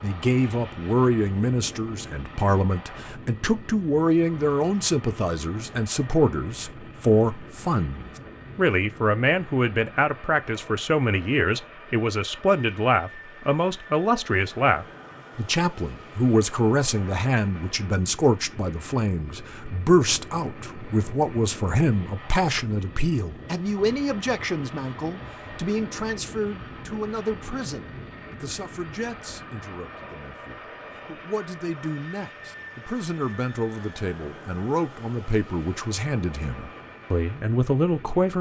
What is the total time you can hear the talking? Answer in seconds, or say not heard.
38 s.